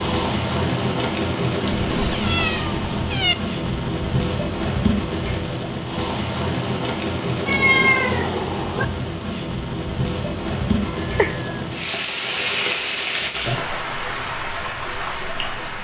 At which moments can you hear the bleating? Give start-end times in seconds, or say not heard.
not heard.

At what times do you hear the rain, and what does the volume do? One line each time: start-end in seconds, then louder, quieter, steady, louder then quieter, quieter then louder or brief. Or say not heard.
0.0-15.7 steady.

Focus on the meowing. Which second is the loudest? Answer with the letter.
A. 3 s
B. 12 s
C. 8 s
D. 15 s
C.